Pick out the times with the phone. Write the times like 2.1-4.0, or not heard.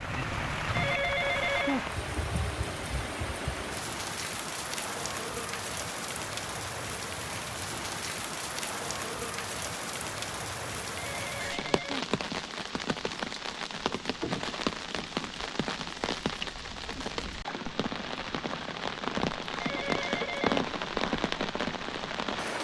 0.7-1.9, 10.9-12.1, 19.5-20.7.